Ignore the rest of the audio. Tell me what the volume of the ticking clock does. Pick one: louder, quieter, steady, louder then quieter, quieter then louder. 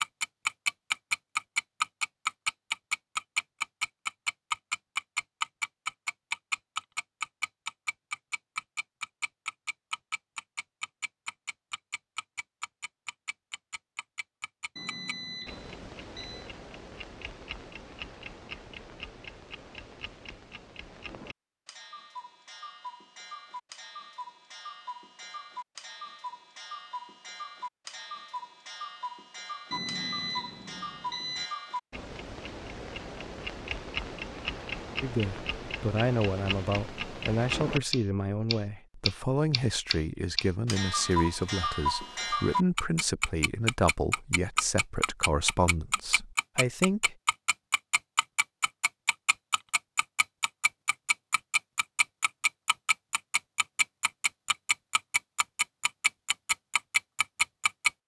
quieter then louder.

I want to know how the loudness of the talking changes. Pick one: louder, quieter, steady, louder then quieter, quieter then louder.
steady.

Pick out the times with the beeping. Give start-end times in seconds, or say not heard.
14.8-16.5, 29.7-31.5.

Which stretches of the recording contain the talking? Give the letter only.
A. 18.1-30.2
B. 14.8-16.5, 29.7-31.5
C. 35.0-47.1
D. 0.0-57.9
C.